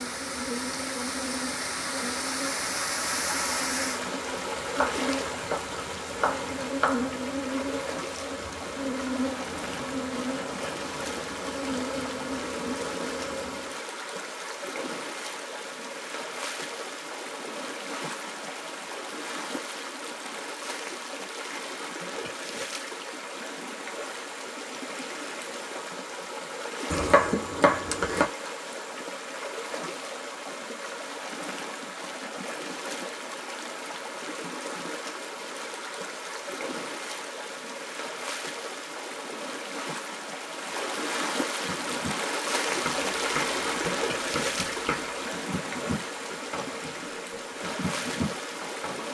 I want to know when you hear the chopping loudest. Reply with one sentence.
The volume of the chopping peaks at 27 seconds.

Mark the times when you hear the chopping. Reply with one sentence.
You can hear the chopping from 4.8 to 7.1 s, from 26.9 to 28.2 s and from 42.9 to 45.1 s.